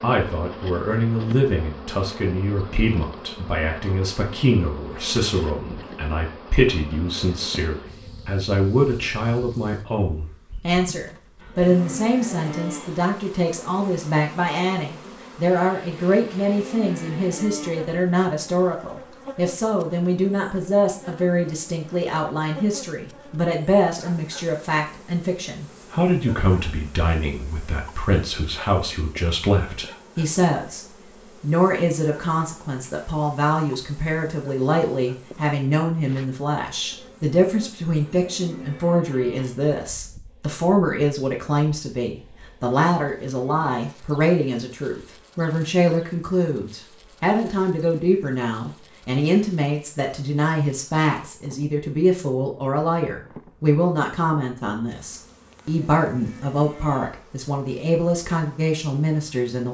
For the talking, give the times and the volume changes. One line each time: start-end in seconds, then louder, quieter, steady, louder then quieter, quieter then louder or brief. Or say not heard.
0.0-59.6 steady.